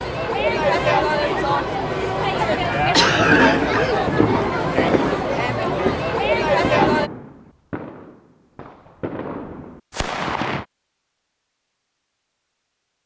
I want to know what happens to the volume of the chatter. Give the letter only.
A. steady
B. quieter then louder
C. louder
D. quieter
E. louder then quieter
A.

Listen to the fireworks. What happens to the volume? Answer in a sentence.
The loudness of the fireworks goes down, then up.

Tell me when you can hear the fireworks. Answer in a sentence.
You can hear the fireworks from 3.1 to 10.7 s.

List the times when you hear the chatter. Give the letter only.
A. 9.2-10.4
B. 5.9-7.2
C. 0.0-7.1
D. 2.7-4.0
C.